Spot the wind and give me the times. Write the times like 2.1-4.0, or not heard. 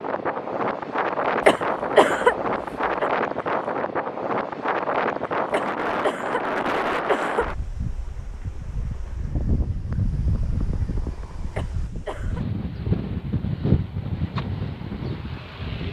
0.0-15.8.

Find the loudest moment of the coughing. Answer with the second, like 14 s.
2 s.